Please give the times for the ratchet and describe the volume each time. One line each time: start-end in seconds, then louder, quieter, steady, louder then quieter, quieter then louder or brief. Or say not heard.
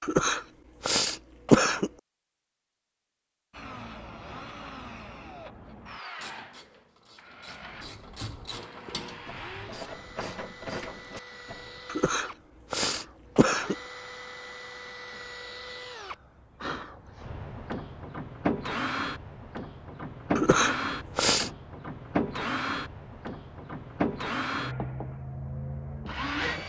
5.7-11.8 louder.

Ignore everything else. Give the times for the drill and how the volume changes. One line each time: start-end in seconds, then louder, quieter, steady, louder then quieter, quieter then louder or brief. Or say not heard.
3.5-26.6 louder.